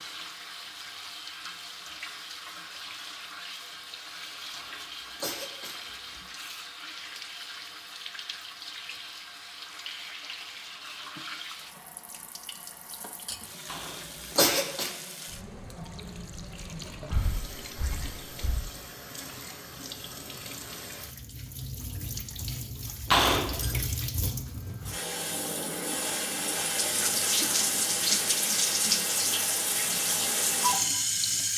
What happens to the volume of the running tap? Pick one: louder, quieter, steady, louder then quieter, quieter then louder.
louder.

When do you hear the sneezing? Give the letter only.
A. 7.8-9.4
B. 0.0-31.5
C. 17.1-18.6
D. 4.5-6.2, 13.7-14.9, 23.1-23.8
D.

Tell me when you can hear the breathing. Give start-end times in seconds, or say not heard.
17.1-18.6.